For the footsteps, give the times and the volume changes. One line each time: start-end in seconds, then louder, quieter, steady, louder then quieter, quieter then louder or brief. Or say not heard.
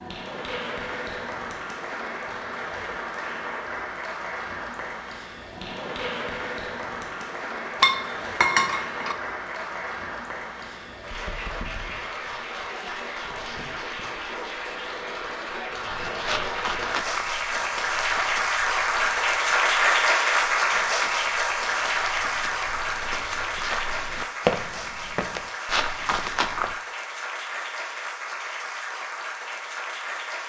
15.9-26.8 quieter then louder.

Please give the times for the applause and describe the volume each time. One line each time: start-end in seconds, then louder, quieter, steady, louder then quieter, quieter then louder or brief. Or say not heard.
0.0-30.4 louder then quieter.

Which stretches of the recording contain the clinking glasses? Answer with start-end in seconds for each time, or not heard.
7.8-9.2.